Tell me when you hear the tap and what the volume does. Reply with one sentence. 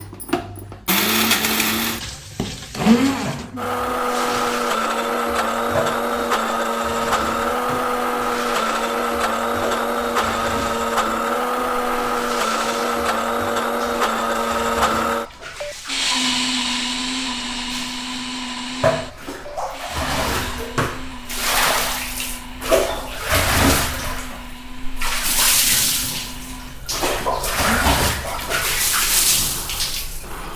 You can hear the tap from 0.0 to 30.5 s, getting louder.